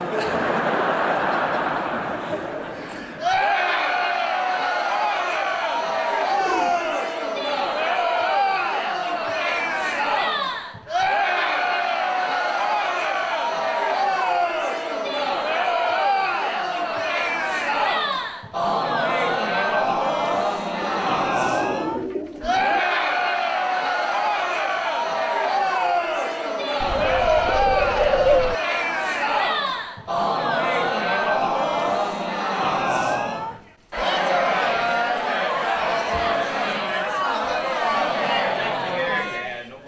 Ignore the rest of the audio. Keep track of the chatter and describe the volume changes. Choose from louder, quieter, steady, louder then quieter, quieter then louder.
steady.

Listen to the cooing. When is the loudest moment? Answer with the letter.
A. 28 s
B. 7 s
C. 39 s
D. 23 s
A.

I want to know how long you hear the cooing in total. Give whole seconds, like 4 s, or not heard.
5 s.